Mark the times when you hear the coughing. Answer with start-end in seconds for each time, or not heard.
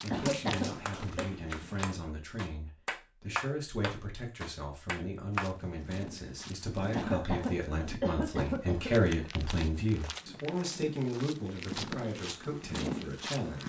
0.1-1.3, 6.9-8.9.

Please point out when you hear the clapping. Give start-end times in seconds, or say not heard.
0.2-5.5.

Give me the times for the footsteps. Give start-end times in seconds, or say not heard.
0.0-1.9, 5.3-13.6.